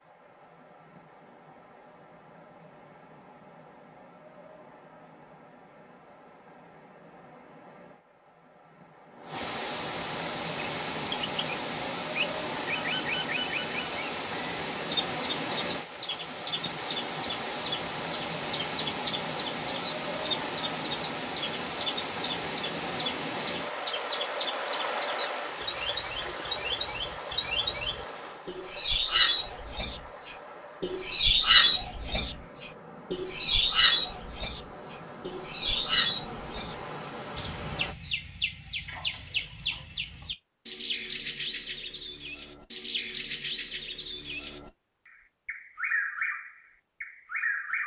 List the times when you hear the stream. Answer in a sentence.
You can hear the stream from 0.0 to 38.0 s.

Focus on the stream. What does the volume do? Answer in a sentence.
The loudness of the stream goes up, then down.